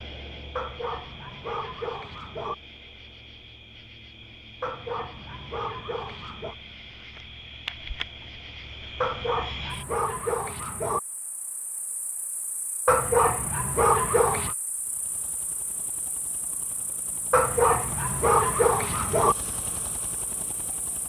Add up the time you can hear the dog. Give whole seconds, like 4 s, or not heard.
10 s.